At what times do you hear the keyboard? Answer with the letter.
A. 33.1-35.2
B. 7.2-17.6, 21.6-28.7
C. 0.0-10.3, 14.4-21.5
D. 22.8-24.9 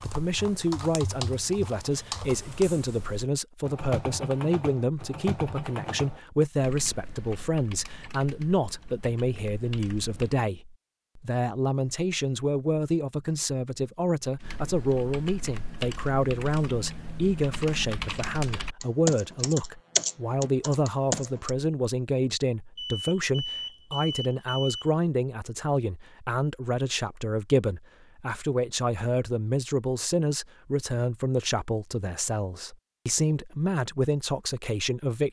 C.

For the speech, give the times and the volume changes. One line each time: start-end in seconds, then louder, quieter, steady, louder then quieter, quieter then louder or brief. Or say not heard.
0.0-35.2 steady.